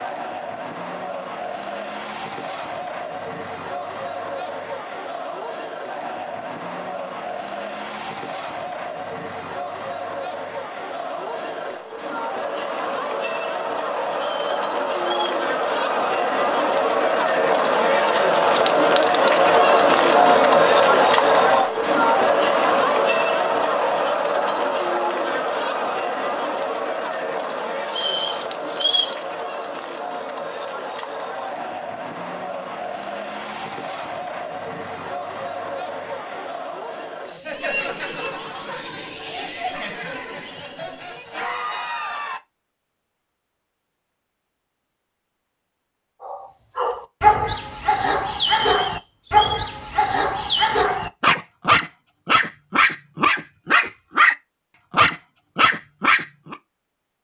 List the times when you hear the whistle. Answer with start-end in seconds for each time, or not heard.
14.2-15.4, 27.9-29.2, 48.5-49.6.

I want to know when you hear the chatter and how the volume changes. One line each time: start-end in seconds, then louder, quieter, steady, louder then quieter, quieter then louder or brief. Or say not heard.
0.0-42.4 louder then quieter.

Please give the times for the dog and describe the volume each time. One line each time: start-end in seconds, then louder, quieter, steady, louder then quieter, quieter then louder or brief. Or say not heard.
46.2-56.5 steady.